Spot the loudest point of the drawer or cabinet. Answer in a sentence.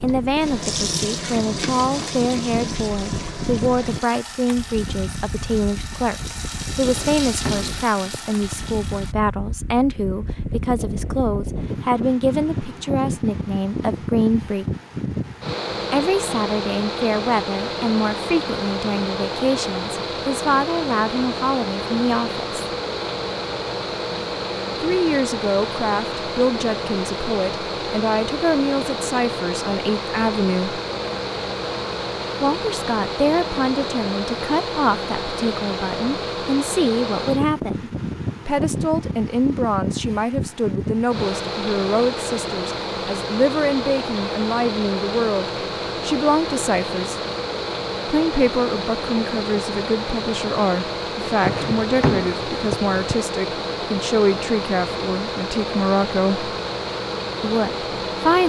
The loudest moment of the drawer or cabinet is at 52 seconds.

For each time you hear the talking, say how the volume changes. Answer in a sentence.
You can hear the talking from 0.0 to 14.7 s, at a steady volume; from 15.9 to 22.6 s, at a steady volume; from 24.8 to 30.8 s, at a steady volume; from 32.4 to 47.2 s, at a steady volume; from 48.0 to 56.5 s, at a steady volume; and briefly from 57.4 to 58.4 s.